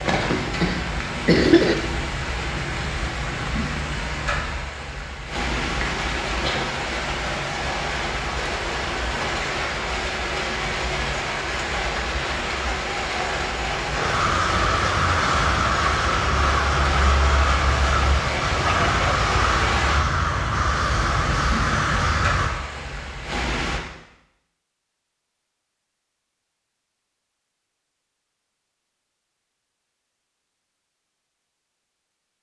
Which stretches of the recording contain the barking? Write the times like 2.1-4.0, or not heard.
not heard.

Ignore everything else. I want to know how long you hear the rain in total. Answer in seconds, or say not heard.
24 s.